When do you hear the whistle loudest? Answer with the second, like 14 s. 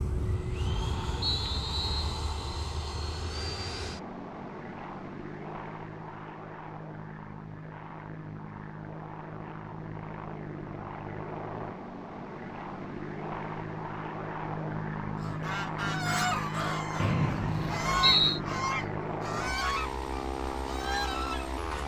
18 s.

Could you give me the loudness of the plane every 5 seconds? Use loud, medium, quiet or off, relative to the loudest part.
loud, medium, loud, loud, loud.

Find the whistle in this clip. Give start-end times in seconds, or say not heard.
1.2-2.1, 16.9-18.4.